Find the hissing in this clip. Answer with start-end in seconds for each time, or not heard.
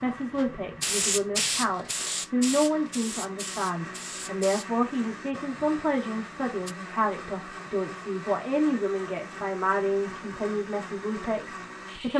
0.0-6.8.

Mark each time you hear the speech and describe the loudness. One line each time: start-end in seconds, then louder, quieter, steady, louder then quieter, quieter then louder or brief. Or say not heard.
0.0-12.1 steady.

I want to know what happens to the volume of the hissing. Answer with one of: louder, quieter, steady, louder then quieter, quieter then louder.
quieter.